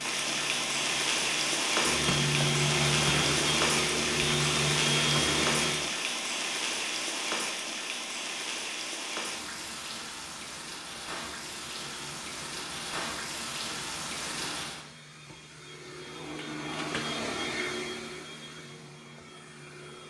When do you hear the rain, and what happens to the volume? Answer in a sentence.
You can hear the rain from 0.0 to 14.8 s, getting quieter.